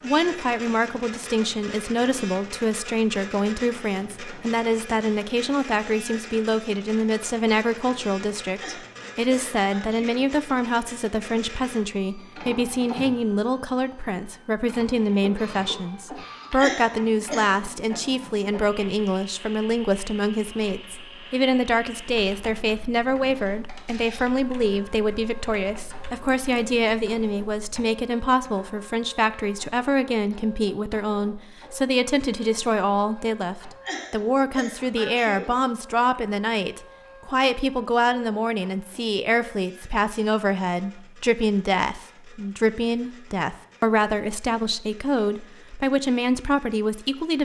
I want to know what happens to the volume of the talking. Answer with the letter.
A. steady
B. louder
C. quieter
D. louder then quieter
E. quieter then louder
A.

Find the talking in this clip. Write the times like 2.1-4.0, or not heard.
0.0-47.4.